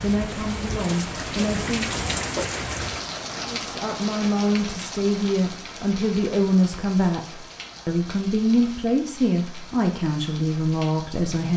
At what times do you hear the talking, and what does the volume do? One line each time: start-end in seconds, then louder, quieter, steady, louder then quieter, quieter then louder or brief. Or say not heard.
0.0-1.9 brief
3.5-11.5 steady.